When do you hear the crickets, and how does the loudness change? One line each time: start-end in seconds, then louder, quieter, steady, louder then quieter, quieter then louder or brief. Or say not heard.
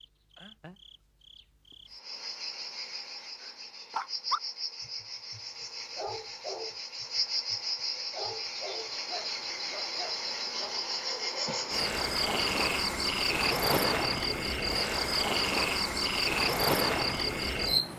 0.0-17.9 louder.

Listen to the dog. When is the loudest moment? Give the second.
4 s.